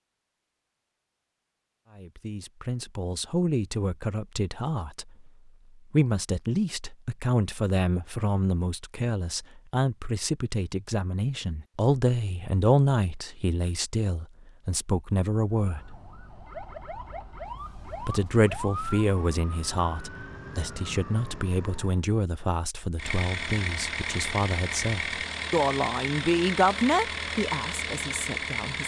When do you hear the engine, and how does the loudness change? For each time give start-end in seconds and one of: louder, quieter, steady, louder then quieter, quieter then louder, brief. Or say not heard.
22.9-28.8 steady.